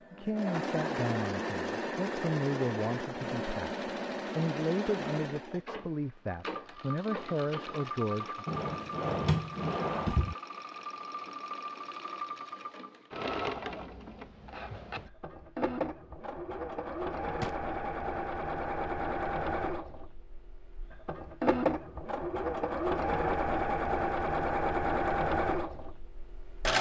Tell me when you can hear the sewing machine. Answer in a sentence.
The sewing machine can be heard from 0.1 to 26.7 s.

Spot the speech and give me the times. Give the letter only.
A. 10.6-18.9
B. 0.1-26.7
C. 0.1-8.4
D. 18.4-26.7
C.